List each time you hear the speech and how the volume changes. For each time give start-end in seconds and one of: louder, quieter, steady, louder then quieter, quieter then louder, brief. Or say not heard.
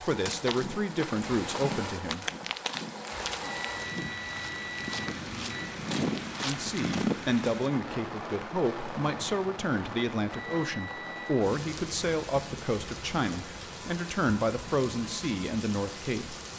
0.0-2.2 brief
6.4-16.4 steady.